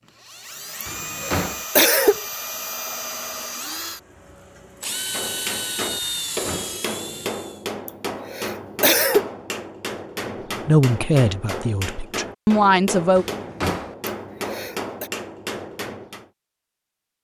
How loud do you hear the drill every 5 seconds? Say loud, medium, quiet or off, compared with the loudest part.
loud, loud, off, off.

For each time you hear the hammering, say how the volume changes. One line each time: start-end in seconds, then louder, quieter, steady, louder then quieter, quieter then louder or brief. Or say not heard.
4.8-16.3 steady.